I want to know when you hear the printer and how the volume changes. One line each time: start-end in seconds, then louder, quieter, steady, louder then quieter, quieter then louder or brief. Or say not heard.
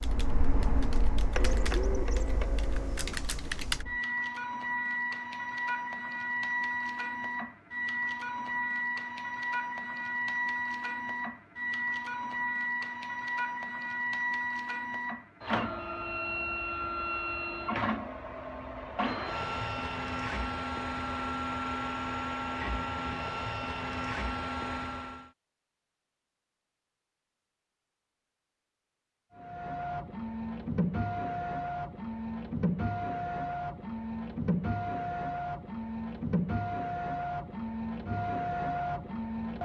0.0-25.3 steady
29.4-39.5 steady.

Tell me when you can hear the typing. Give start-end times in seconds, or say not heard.
0.0-3.9.